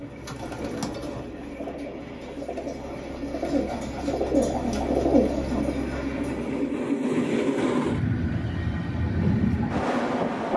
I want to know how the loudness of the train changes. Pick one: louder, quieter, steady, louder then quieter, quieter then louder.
louder.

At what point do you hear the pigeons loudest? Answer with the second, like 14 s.
5 s.